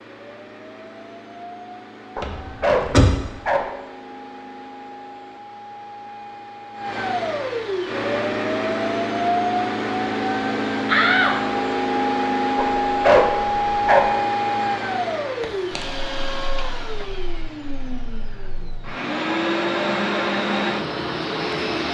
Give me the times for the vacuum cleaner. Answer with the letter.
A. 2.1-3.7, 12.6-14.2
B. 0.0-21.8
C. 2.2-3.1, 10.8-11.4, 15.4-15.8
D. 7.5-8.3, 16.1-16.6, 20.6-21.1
B.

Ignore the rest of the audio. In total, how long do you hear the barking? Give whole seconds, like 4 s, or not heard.
3 s.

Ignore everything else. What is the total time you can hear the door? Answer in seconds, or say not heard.
2 s.